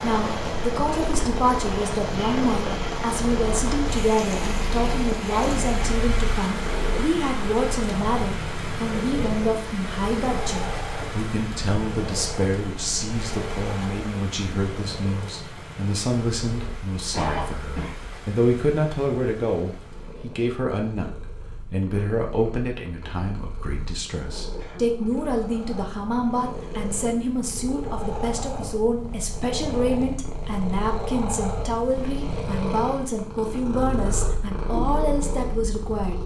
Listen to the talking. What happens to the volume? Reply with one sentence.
The loudness of the talking stays about the same.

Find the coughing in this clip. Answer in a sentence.
You can hear the coughing from 5.3 to 6.0 s, from 17.1 to 17.9 s and from 24.6 to 25.1 s.